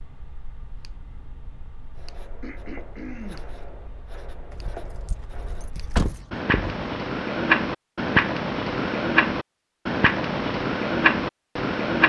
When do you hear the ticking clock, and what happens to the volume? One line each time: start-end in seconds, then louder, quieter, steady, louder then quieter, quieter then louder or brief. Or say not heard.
0.0-12.0 louder.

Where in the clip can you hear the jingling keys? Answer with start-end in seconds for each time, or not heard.
4.5-6.2.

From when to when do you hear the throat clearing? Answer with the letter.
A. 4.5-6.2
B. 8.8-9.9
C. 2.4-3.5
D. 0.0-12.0
C.